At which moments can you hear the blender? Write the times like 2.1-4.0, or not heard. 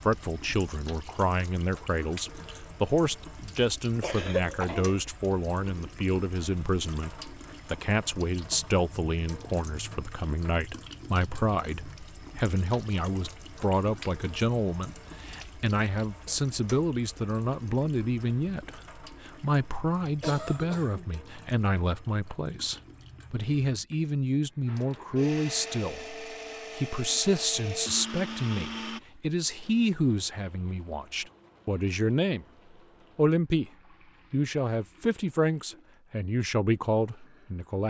24.6-29.0.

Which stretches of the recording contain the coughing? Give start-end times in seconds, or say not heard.
4.0-4.9, 20.2-21.3.